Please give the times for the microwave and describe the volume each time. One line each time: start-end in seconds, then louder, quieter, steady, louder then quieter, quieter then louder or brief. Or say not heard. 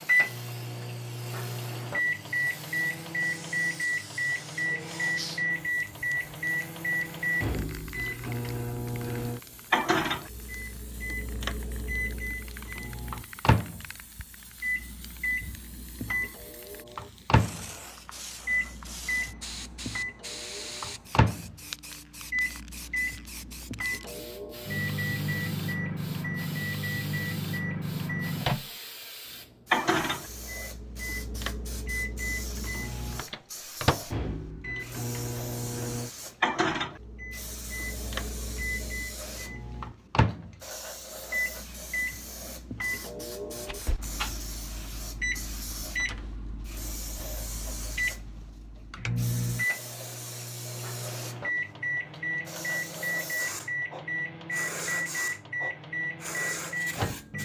0.0-28.7 steady
29.7-57.3 steady.